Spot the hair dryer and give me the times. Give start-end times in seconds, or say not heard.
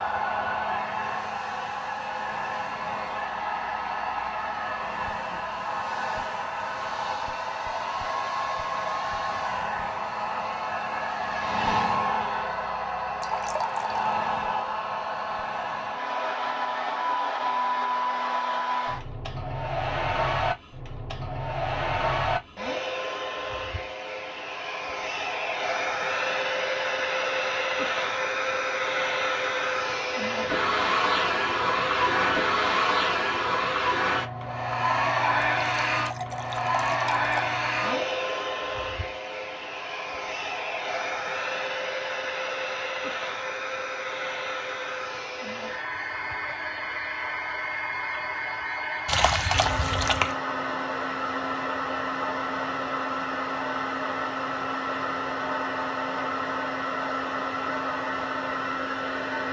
0.0-59.4.